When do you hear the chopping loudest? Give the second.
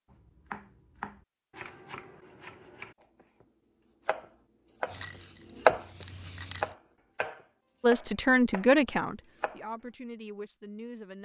6 s.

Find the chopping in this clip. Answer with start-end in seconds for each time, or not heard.
0.1-9.6.